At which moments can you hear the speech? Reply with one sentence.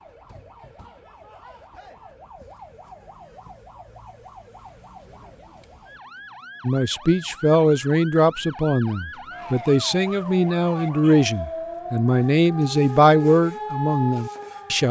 The speech can be heard from 6.7 to 14.8 s.